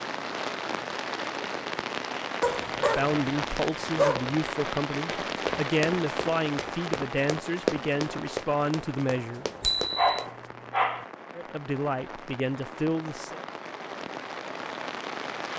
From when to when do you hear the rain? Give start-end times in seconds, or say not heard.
0.0-15.5.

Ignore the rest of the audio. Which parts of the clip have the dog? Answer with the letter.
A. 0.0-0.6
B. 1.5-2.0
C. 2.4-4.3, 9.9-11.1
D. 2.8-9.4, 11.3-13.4
C.